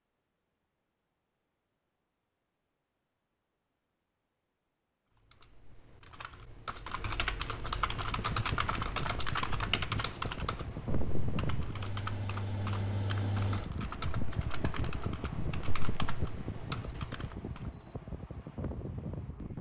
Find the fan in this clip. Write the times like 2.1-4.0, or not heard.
7.7-19.5.